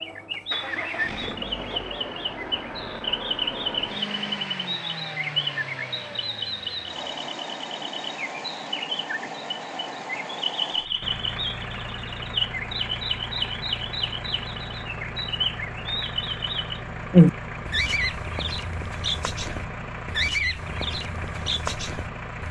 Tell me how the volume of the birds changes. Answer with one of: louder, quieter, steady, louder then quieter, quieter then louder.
louder then quieter.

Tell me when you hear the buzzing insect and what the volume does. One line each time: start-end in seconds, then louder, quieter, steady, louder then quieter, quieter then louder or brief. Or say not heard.
not heard.